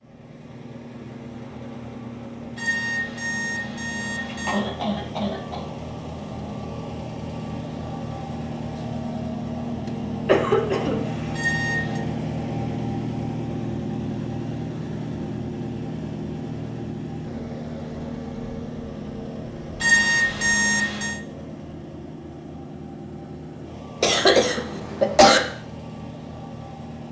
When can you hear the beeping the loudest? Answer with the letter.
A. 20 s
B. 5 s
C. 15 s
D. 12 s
A.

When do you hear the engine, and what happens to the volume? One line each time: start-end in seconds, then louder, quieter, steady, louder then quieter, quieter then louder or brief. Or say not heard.
0.0-27.0 louder then quieter.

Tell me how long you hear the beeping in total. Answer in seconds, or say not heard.
4 s.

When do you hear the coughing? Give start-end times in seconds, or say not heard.
4.5-5.7, 9.8-11.2, 24.0-25.4.